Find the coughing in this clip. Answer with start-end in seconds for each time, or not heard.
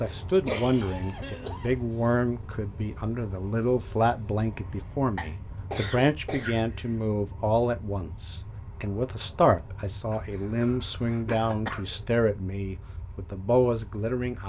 0.5-2.1, 5.2-7.0, 10.1-11.9.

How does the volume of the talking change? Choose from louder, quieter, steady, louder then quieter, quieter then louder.
steady.